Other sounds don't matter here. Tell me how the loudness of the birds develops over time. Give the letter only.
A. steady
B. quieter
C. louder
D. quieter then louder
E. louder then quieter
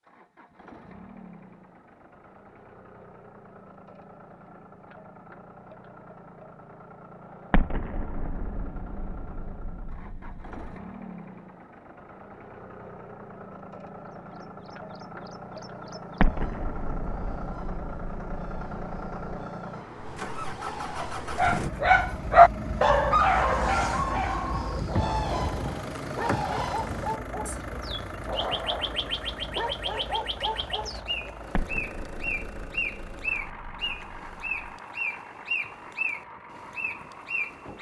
C.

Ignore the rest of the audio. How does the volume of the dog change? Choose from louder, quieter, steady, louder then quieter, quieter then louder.
quieter.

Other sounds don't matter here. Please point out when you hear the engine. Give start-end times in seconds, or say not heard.
0.0-37.7.